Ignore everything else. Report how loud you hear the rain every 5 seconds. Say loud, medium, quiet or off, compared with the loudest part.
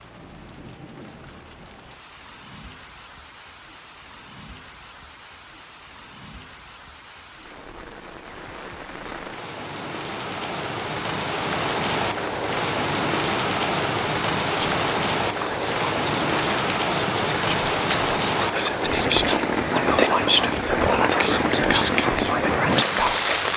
quiet, quiet, loud, loud, loud.